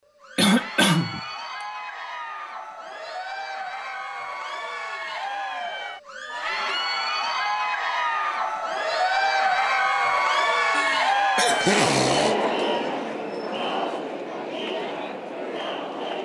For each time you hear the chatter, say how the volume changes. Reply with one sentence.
You can hear the chatter from 0.1 to 16.2 s, getting louder then quieter.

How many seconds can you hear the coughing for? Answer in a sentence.
The coughing can be heard for 3 seconds in total.